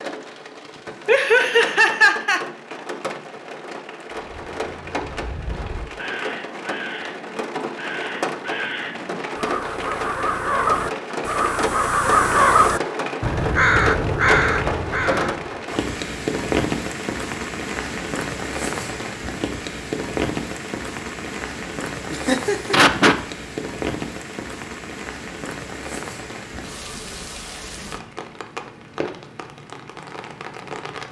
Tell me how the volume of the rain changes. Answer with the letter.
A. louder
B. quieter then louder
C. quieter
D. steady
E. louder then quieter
E.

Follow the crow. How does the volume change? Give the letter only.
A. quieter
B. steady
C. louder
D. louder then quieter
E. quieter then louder
C.